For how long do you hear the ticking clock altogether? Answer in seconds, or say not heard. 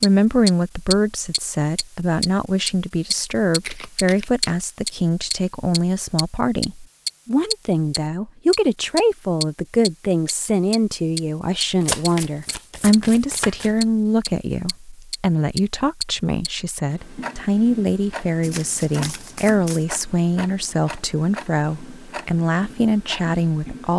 24 s.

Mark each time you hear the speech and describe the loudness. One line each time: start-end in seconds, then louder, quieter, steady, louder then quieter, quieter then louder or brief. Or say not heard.
0.0-23.9 steady.